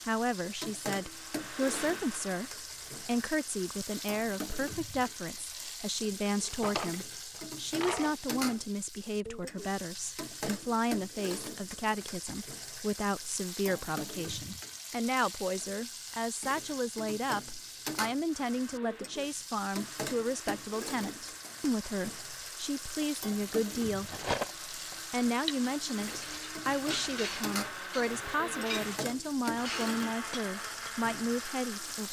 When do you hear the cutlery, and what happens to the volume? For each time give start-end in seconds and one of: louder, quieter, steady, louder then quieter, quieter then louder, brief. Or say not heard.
23.0-30.9 quieter.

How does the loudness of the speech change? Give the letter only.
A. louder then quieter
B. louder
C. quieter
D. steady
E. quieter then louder
D.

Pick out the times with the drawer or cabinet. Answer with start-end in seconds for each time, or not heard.
6.2-8.2.